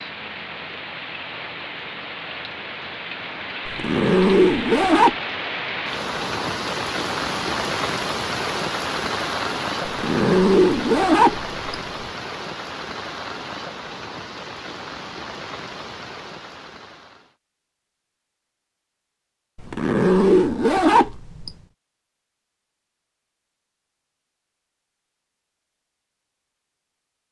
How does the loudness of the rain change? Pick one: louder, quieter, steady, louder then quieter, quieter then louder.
louder then quieter.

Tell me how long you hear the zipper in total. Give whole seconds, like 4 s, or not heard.
6 s.